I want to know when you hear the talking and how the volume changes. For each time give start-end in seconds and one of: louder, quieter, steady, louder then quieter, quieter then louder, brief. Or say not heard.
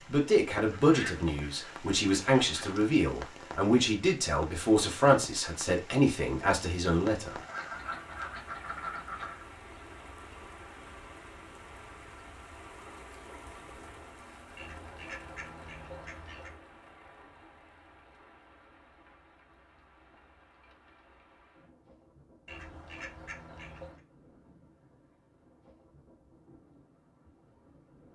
0.1-7.4 steady.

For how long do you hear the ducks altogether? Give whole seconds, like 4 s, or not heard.
8 s.